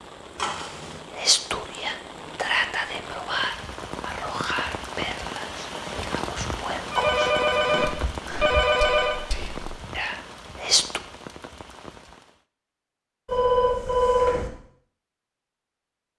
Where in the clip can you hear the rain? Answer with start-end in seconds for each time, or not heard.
0.0-12.4.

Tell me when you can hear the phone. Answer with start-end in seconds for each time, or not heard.
0.3-0.9, 6.9-9.2, 13.2-14.5.